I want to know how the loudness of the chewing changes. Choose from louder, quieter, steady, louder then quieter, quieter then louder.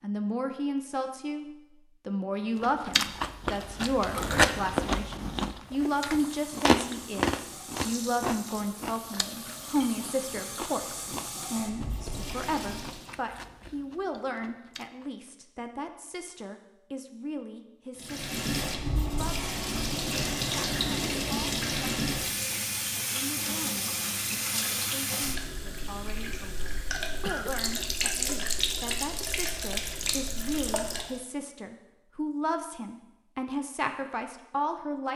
quieter.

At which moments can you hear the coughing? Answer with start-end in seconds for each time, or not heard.
27.2-27.9.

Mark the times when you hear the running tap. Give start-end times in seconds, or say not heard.
5.7-13.2, 17.9-31.1.